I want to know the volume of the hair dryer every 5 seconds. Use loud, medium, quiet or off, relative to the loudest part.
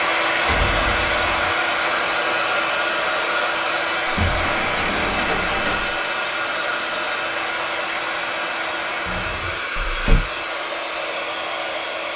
loud, loud, medium.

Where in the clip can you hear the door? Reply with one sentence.
The door can be heard from 0.5 to 1.5 s, from 4.0 to 6.0 s and from 9.1 to 10.2 s.